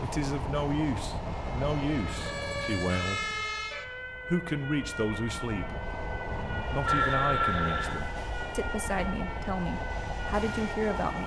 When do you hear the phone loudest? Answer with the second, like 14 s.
7 s.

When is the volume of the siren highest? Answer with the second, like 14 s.
3 s.